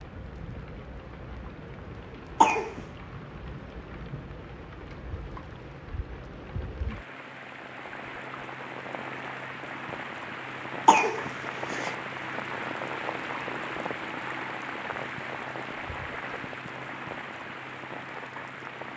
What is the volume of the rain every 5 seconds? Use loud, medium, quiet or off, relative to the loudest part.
medium, medium, loud, loud.